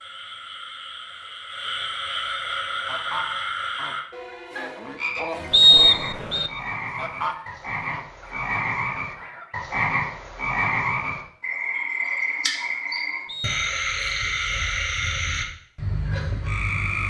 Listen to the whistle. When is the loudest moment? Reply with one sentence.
The loudest moment of the whistle is at 6 seconds.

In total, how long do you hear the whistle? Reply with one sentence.
The whistle can be heard for 2 seconds in total.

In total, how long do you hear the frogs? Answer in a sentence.
You can hear the frogs for 17 seconds altogether.